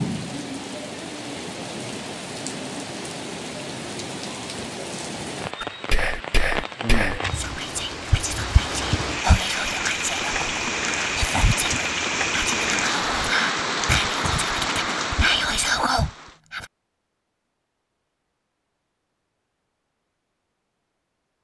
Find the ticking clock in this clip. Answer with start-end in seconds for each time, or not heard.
not heard.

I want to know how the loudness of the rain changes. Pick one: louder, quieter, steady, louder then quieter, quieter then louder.
louder.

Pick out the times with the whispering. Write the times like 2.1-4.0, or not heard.
5.6-16.6.